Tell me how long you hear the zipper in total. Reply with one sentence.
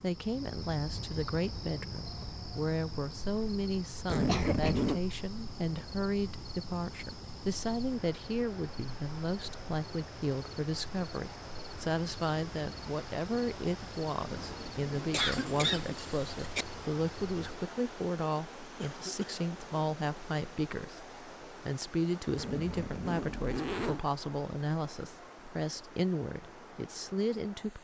The zipper can be heard for 4 seconds in total.